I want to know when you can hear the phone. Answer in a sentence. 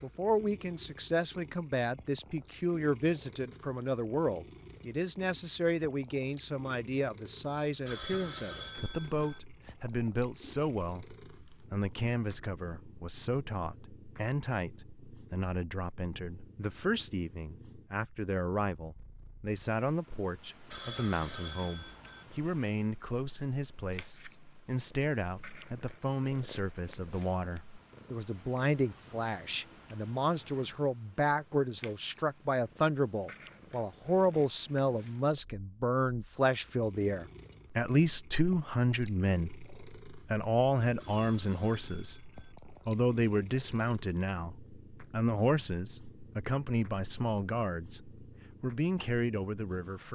You can hear the phone from 7.8 to 9.4 s, from 20.7 to 22.2 s and from 41.0 to 42.5 s.